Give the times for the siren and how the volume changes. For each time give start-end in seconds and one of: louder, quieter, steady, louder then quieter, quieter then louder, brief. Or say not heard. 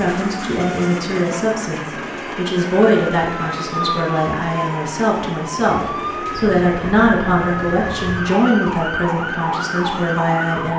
0.0-10.7 louder.